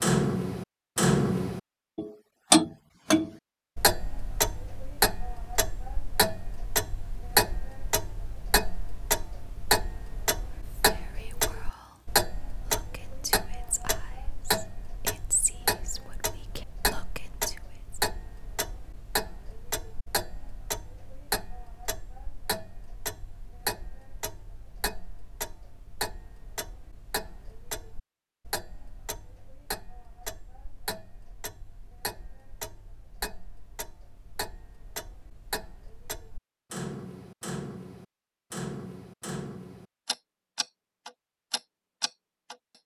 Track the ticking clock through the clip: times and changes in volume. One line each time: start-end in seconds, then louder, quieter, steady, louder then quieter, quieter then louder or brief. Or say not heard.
0.0-42.5 quieter.